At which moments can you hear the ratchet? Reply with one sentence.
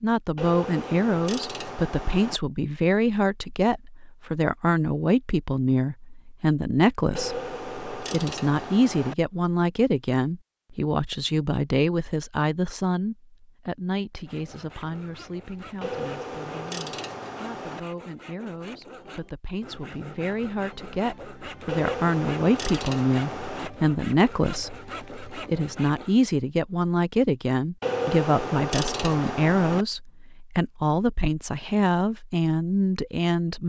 You can hear the ratchet from 0.3 to 2.4 s, from 7.2 to 9.2 s, from 15.8 to 17.8 s, from 21.6 to 23.7 s and from 27.8 to 29.9 s.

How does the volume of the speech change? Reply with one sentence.
The volume of the speech goes down, then up.